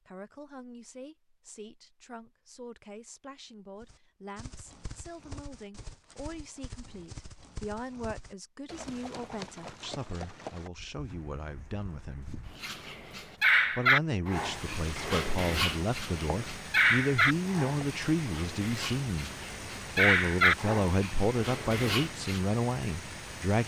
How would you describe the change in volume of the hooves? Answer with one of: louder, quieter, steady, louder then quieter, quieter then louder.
louder then quieter.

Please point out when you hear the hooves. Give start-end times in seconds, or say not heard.
3.8-12.6.